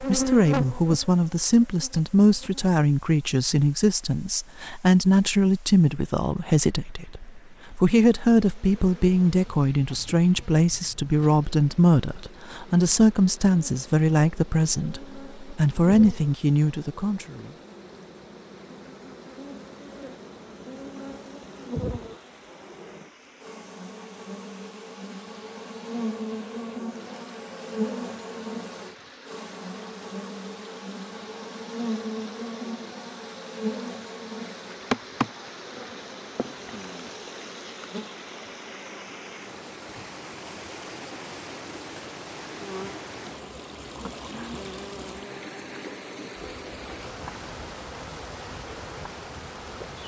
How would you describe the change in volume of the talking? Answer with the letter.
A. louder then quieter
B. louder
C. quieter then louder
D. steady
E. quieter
D.